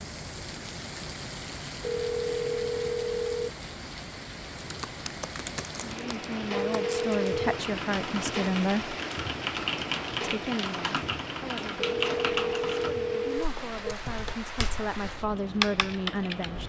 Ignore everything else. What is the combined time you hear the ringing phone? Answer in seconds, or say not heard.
5 s.